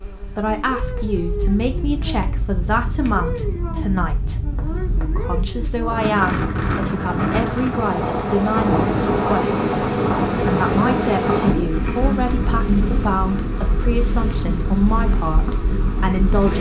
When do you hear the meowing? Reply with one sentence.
You can't hear the meowing here.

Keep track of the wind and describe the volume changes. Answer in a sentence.
The loudness of the wind goes up, then down.